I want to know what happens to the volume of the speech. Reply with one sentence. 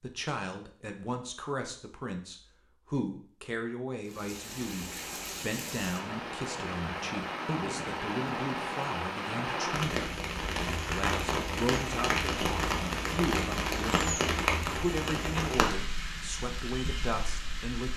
The loudness of the speech stays about the same.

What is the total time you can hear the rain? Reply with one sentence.
The rain can be heard for 14 seconds in total.